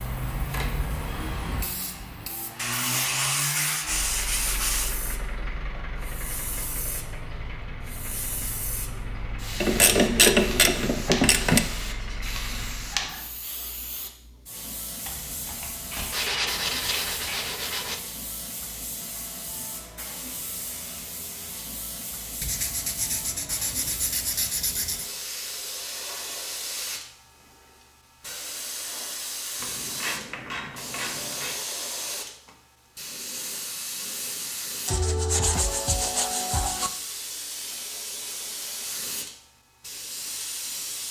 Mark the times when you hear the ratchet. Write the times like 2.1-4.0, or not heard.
9.6-11.6, 15.0-17.4, 29.6-31.6.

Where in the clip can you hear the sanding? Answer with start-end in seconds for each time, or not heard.
2.5-5.0, 16.1-18.0, 22.4-25.1, 34.9-36.9.